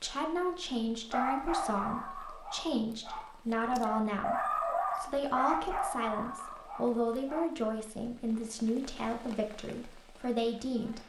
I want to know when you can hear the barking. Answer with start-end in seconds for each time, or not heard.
1.1-7.5.